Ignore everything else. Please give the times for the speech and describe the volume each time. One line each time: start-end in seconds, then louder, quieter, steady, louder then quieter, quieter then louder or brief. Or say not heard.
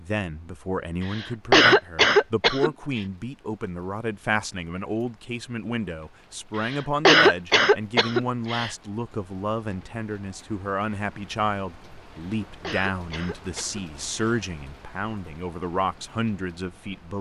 0.0-17.1 steady.